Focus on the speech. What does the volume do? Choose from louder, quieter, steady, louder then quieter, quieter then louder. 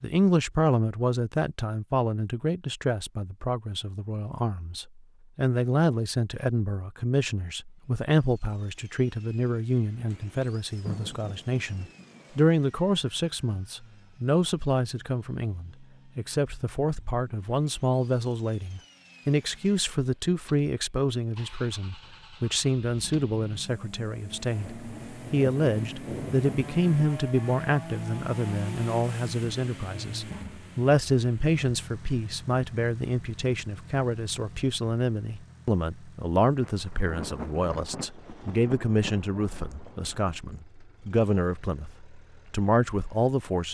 steady.